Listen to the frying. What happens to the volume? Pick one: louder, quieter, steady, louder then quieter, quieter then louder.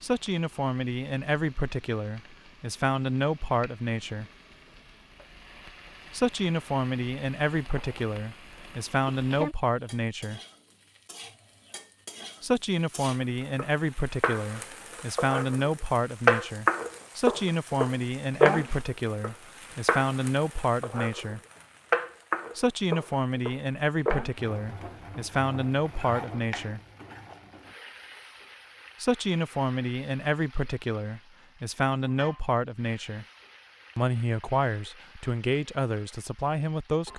louder then quieter.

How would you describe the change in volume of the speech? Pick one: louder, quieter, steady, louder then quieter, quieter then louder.
steady.